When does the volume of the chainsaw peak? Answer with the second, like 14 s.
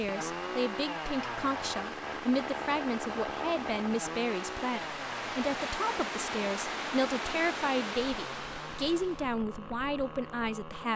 3 s.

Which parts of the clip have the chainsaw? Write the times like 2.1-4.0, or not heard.
0.0-10.9.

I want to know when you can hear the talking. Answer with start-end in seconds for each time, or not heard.
0.0-10.9.